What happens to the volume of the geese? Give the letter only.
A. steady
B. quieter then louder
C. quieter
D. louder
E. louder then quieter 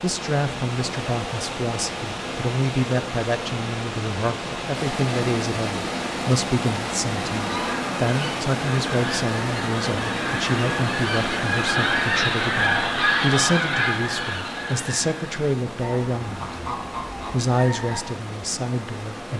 E.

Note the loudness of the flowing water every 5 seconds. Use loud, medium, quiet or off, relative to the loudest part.
loud, loud, loud, medium.